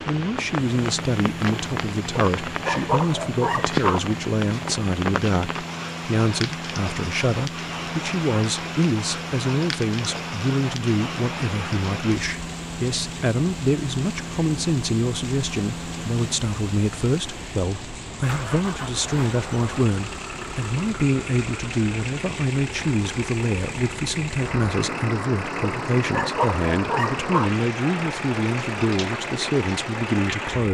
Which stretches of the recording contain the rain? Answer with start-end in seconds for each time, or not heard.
0.0-30.7.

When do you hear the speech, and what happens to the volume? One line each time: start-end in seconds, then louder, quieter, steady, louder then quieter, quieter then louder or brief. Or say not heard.
0.1-30.7 steady.